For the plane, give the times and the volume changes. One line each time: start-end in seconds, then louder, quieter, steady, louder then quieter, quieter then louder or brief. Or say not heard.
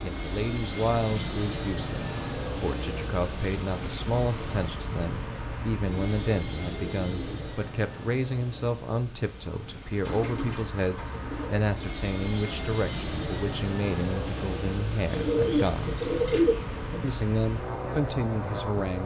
0.0-19.0 quieter then louder.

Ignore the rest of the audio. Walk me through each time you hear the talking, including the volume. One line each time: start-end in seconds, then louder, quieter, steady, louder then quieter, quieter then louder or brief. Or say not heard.
0.0-15.9 steady
17.0-19.0 brief.